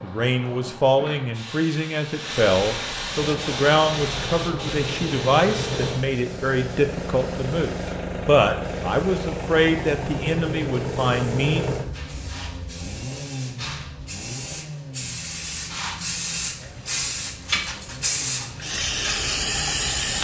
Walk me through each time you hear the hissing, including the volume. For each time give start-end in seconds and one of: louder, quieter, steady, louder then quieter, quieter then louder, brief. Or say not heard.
0.0-20.2 quieter then louder.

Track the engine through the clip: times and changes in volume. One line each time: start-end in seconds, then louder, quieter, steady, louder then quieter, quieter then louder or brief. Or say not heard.
3.2-20.2 quieter.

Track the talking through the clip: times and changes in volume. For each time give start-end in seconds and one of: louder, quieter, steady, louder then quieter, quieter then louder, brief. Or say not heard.
0.0-11.7 steady.